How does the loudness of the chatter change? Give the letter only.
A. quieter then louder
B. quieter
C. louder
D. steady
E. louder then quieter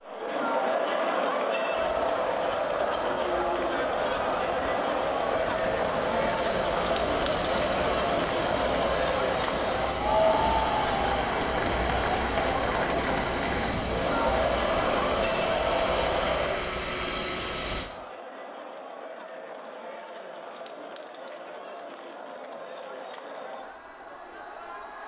B.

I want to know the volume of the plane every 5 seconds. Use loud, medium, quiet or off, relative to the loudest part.
quiet, loud, loud, loud, off.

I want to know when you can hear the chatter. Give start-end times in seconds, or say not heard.
0.0-25.0.